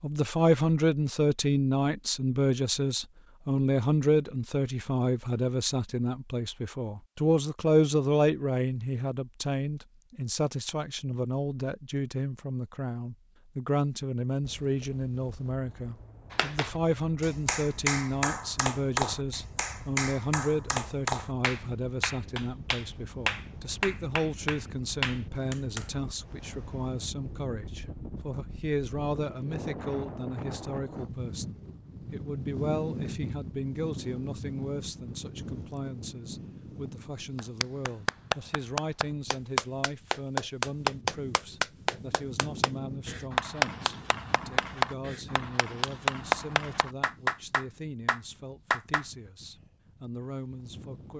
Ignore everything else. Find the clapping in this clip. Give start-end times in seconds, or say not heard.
16.3-25.9, 37.4-49.0.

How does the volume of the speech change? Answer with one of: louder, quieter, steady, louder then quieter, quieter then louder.
quieter.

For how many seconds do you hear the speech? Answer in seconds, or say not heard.
51 s.